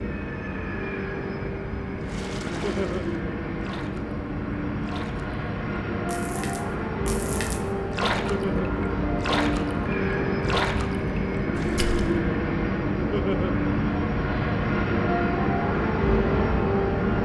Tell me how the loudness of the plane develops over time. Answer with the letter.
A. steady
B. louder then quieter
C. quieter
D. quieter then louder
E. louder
E.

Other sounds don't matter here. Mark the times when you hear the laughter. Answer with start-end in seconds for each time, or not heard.
2.5-3.0, 8.2-8.7, 13.0-13.6.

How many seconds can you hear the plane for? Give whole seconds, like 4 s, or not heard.
17 s.